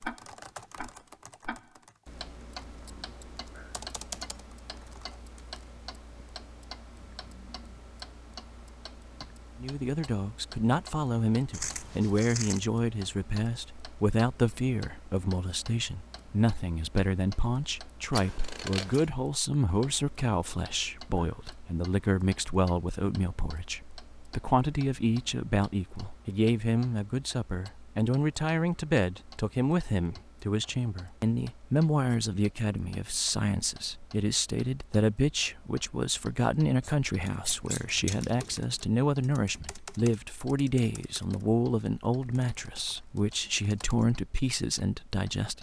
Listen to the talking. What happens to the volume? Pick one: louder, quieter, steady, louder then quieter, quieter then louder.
steady.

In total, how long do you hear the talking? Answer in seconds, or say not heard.
36 s.